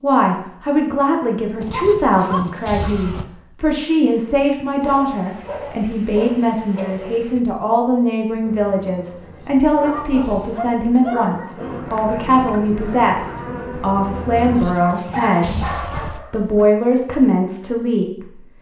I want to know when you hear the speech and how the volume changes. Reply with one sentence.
You can hear the speech from 0.0 to 18.5 s, at a steady volume.